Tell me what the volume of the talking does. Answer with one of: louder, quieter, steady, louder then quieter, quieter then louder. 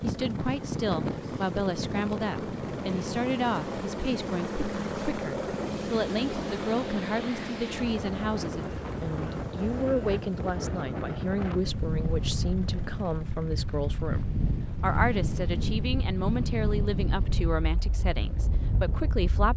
steady.